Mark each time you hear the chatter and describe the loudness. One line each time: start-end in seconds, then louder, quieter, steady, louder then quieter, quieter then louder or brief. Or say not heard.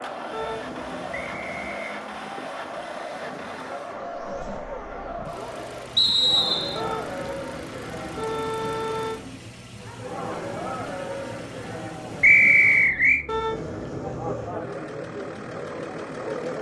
0.0-16.5 steady.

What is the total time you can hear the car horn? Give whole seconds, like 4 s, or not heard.
5 s.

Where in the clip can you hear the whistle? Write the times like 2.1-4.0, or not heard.
1.1-2.0, 6.0-6.8, 12.2-13.2.